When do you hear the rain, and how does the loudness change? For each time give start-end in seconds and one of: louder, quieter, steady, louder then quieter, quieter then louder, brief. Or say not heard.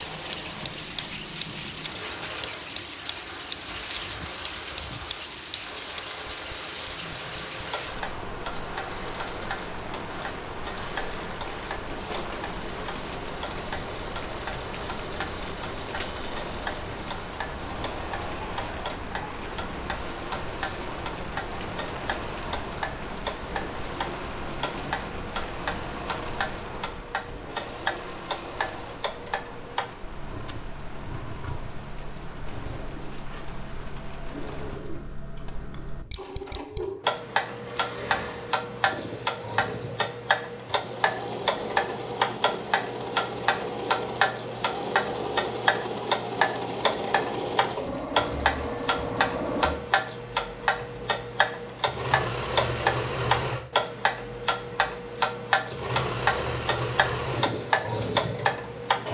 0.0-34.8 quieter.